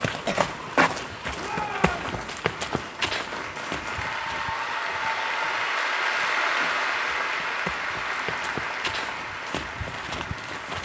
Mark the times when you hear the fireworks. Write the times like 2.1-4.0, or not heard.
not heard.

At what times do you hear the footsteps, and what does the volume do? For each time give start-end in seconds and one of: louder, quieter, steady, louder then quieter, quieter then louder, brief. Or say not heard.
0.0-10.8 quieter then louder.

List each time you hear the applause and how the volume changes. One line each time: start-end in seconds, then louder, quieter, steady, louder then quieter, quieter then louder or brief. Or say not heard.
0.0-10.8 louder then quieter.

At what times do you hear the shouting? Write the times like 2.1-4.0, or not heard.
1.4-2.2.